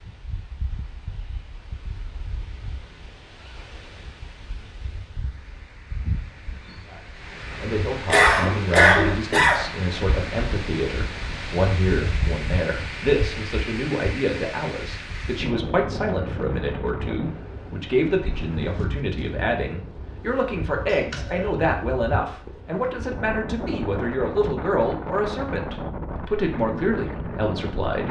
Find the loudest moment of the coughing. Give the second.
9 s.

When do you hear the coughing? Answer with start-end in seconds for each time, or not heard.
8.1-9.7, 20.9-21.6.